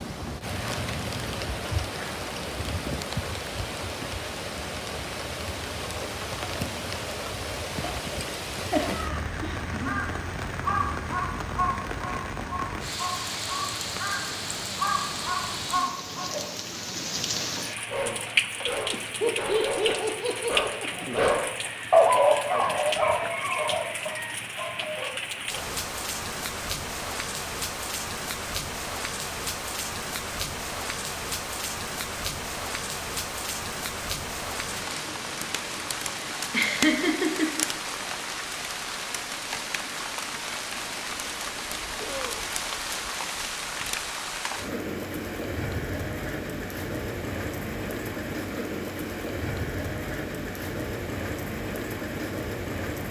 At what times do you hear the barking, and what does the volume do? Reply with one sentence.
The barking can be heard from 17.9 to 25.6 s, getting louder then quieter.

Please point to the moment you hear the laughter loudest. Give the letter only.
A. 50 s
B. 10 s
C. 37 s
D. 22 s
C.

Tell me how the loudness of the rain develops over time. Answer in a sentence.
The volume of the rain stays about the same.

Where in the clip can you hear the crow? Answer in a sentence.
You can hear the crow from 9.1 to 16.4 s.